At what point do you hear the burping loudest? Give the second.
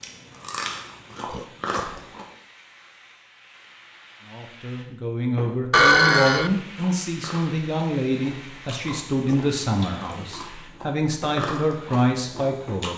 6 s.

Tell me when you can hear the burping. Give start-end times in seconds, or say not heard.
1.2-2.0, 5.7-6.5, 8.8-10.5.